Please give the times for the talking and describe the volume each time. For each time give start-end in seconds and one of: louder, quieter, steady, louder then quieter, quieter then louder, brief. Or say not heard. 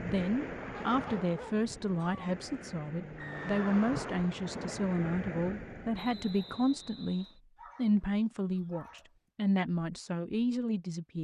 0.0-11.1 steady.